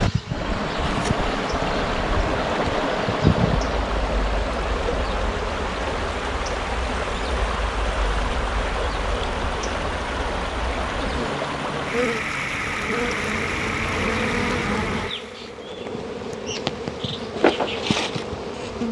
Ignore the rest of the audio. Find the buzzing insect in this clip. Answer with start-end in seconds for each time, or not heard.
0.0-18.8.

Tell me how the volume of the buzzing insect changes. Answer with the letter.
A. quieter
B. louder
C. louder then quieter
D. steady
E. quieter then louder
E.